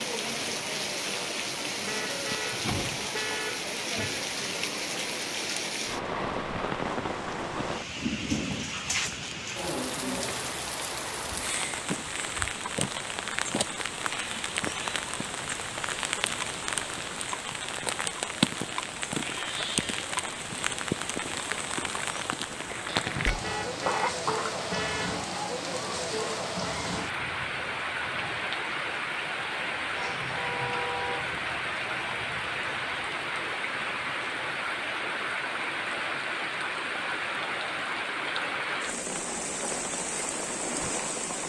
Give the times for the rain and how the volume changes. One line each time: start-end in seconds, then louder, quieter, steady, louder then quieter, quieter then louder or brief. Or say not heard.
0.0-41.4 steady.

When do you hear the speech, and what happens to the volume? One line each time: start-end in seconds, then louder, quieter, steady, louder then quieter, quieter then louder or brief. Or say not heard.
not heard.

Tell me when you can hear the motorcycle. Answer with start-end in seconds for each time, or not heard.
not heard.